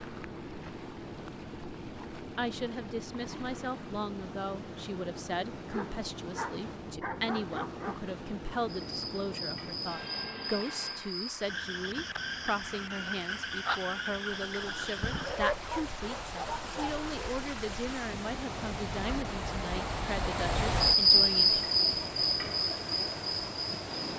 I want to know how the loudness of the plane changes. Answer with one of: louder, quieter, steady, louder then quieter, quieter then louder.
steady.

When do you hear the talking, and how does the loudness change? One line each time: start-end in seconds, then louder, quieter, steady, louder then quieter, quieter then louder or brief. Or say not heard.
2.1-21.6 steady.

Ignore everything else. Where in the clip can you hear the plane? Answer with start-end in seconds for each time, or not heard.
0.0-11.2.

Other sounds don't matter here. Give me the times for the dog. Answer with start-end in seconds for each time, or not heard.
5.7-8.1, 15.1-17.1.